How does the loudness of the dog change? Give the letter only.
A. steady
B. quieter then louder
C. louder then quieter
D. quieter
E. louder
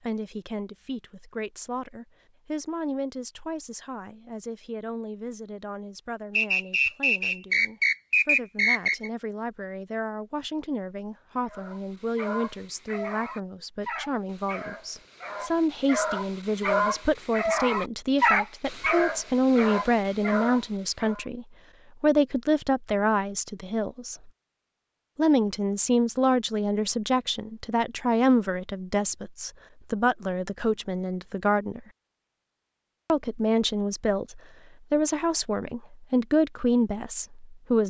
C.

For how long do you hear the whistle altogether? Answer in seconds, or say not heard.
3 s.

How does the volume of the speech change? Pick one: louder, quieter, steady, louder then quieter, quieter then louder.
louder.